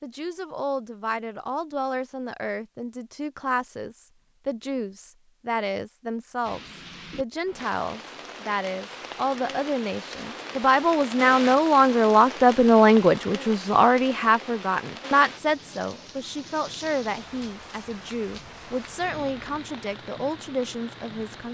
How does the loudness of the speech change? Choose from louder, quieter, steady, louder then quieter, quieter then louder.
louder then quieter.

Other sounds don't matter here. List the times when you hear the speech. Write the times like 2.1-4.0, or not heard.
0.0-21.5.